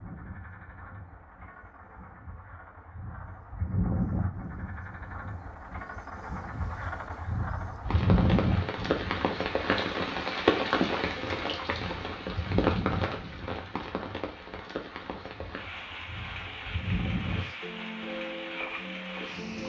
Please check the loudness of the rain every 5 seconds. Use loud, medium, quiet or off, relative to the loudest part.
off, loud, loud, medium.